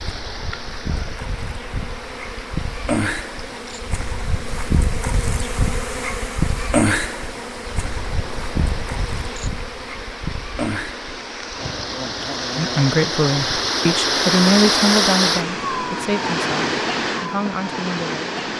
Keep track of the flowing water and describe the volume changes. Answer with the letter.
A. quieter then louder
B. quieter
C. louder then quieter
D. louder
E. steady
D.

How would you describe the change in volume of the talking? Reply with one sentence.
The volume of the talking goes down.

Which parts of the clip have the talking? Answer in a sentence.
You can hear the talking from 12.6 to 18.2 s.